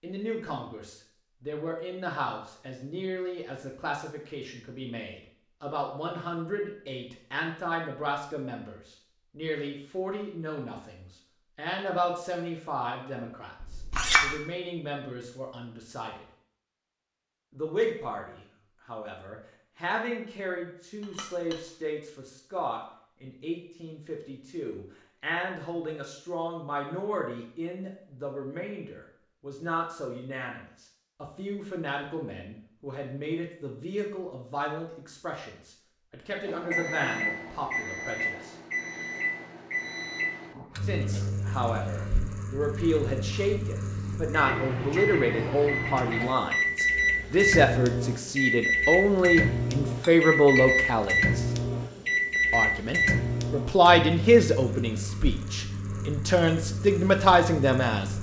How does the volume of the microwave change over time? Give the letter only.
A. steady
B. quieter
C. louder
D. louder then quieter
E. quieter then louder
D.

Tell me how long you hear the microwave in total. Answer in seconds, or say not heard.
22 s.